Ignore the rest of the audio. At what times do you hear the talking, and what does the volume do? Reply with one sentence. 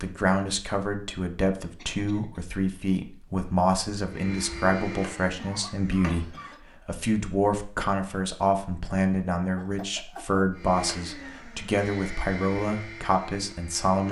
You can hear the talking from 0.0 to 14.0 s, at a steady volume.